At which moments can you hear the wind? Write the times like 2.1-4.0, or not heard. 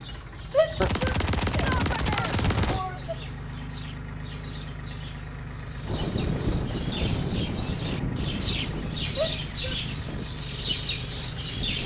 5.8-11.8.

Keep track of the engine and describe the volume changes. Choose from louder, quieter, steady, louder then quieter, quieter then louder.
steady.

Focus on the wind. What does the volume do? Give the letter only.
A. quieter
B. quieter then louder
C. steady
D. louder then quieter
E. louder
A.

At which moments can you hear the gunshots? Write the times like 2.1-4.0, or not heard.
0.8-2.8.